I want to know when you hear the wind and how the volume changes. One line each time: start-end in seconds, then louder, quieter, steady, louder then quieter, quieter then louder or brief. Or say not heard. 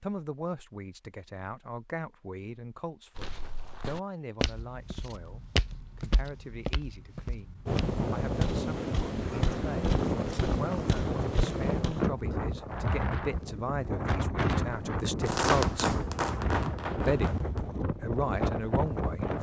7.7-19.3 steady.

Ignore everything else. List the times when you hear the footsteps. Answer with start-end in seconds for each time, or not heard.
3.1-12.2.